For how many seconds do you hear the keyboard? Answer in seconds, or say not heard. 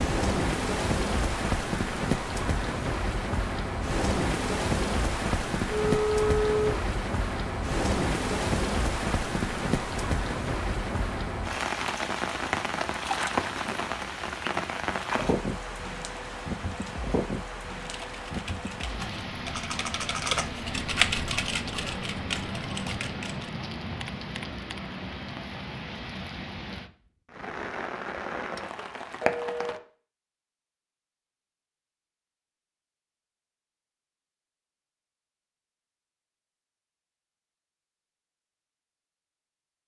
7 s.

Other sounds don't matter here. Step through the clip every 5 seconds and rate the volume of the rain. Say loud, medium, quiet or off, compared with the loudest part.
loud, loud, loud, medium, medium, medium, off, off.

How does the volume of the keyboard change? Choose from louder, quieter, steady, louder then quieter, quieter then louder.
louder then quieter.